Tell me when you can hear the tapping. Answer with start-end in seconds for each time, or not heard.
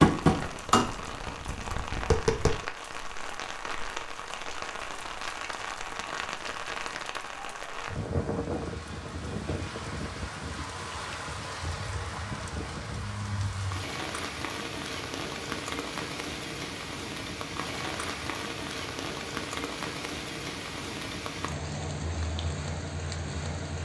0.0-2.6.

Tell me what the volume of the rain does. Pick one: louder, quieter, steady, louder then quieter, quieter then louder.
steady.